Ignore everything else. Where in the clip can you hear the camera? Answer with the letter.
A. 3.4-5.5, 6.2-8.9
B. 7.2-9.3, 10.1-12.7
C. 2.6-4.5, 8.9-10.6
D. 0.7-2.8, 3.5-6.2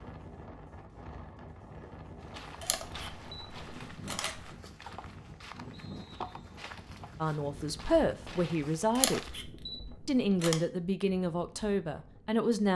C.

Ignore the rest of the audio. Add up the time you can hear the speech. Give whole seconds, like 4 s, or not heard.
5 s.